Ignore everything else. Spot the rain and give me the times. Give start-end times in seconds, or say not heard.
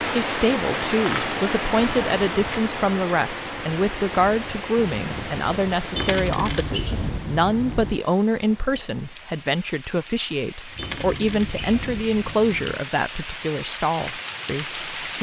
0.0-15.1.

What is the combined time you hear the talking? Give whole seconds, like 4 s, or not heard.
15 s.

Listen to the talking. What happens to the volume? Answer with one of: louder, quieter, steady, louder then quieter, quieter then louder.
steady.